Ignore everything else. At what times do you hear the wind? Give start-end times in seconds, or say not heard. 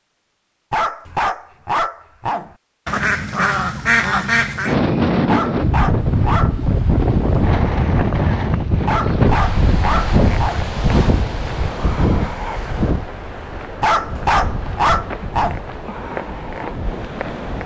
4.7-17.6.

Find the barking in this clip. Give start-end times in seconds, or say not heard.
0.7-2.5, 5.2-6.6, 8.8-10.7, 13.8-15.7.